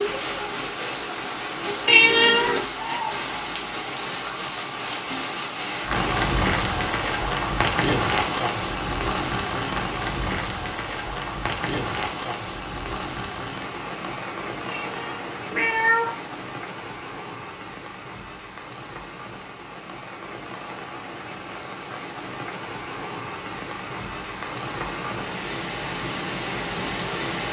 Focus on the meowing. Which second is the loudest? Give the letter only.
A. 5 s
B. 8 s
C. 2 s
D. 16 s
C.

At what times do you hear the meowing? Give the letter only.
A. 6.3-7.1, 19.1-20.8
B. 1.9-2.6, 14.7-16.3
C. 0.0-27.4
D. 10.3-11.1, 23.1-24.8
B.